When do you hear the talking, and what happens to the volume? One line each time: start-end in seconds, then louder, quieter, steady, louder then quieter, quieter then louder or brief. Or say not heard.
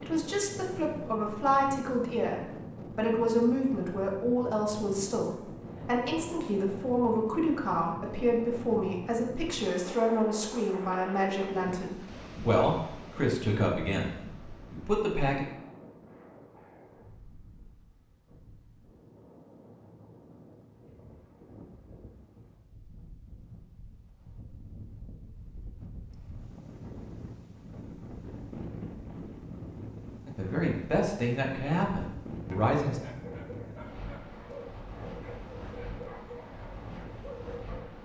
0.0-14.1 steady
14.7-15.4 brief
30.2-33.0 brief.